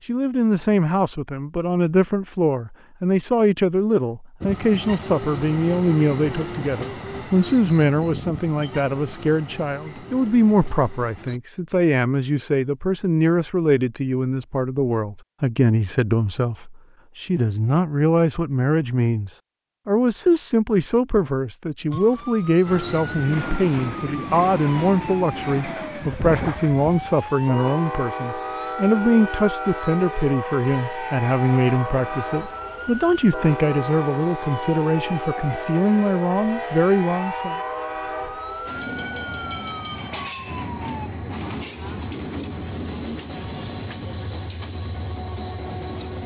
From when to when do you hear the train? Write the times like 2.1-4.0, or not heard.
4.4-11.4, 22.6-46.2.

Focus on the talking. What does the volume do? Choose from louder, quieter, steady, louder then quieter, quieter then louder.
steady.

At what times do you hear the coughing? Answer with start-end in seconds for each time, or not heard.
not heard.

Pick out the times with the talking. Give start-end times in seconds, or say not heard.
0.1-37.5.